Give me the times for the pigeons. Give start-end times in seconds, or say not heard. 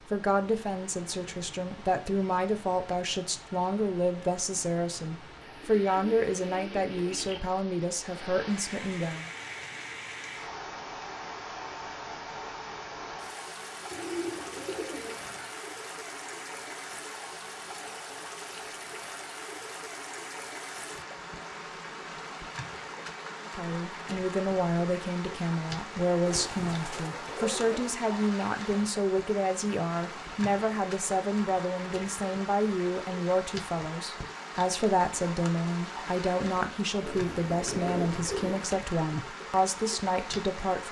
5.4-7.4, 13.9-15.5, 26.2-27.9, 37.0-38.7.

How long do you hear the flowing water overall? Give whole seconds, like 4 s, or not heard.
41 s.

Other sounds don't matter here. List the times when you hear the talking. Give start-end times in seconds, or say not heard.
0.1-9.2, 23.4-40.8.